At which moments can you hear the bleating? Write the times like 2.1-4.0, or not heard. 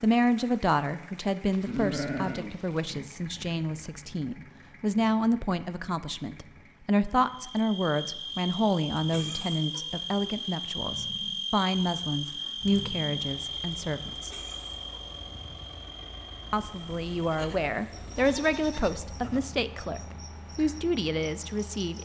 1.5-3.0, 16.6-19.4.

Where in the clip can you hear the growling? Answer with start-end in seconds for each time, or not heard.
not heard.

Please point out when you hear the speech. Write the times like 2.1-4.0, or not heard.
0.0-14.3, 16.5-22.0.